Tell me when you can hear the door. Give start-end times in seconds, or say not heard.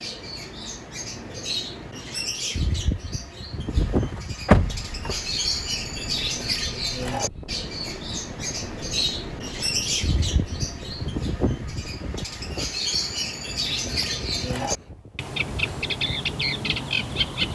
3.8-5.2.